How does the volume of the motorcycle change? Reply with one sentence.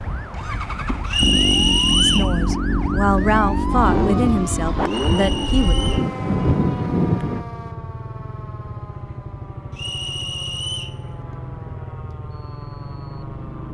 The volume of the motorcycle goes down.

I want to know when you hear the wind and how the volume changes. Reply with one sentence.
The wind can be heard from 0.0 to 7.5 s, getting louder.